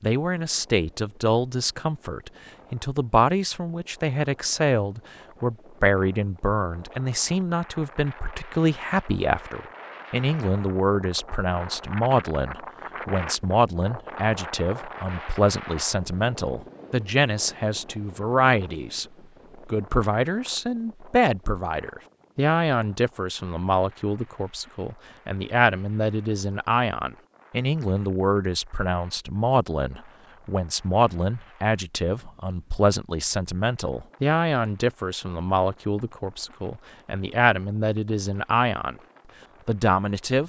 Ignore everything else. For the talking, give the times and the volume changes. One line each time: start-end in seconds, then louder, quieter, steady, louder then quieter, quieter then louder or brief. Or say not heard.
0.0-19.1 steady
19.6-39.0 steady
39.6-40.4 brief.